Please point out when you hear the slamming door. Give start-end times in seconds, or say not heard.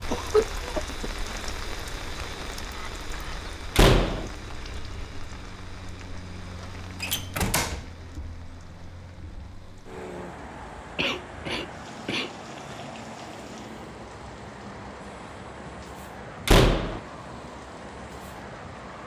3.8-4.3, 7.0-7.8, 16.4-17.0.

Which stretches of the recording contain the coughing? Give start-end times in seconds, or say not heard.
0.1-1.1, 10.9-12.8.